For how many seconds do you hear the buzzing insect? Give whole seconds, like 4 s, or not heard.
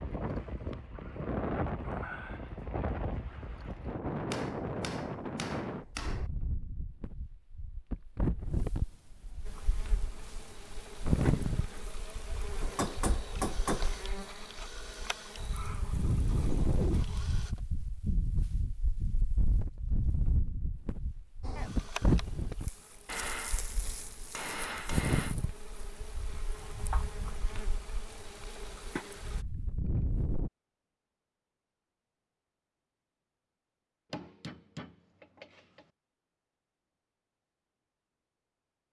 16 s.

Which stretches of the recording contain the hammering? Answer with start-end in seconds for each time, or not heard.
4.3-6.2, 12.6-13.9, 23.1-25.4, 34.1-35.9.